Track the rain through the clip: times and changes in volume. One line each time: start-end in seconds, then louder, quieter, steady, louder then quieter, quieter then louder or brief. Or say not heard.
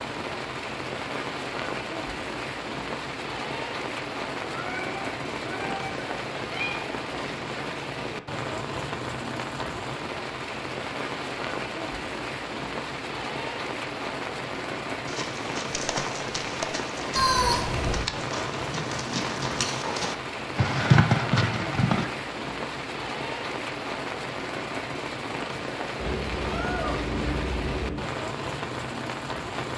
0.0-29.7 steady.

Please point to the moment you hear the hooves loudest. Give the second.
21 s.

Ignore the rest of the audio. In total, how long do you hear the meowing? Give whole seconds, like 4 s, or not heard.
5 s.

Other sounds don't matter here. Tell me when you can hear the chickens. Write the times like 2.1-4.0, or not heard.
not heard.